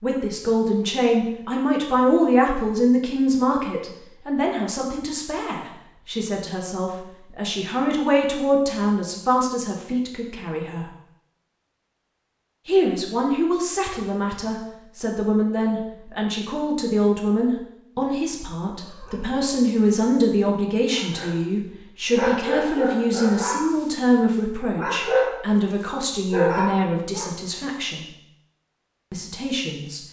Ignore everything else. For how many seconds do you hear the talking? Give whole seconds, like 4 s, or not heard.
27 s.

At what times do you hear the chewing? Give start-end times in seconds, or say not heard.
not heard.